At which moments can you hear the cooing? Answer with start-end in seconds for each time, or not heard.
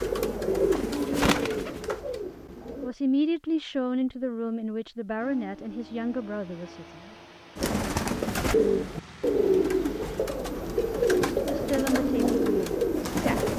0.0-3.0, 7.5-13.5.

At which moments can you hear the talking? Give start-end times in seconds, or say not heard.
2.8-7.1, 11.3-13.4.